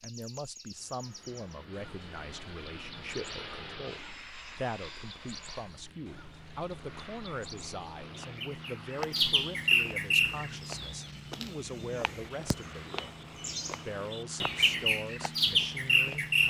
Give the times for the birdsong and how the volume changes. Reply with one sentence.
The birdsong can be heard from 0.0 to 16.4 s, getting louder.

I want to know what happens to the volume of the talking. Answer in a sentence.
The loudness of the talking stays about the same.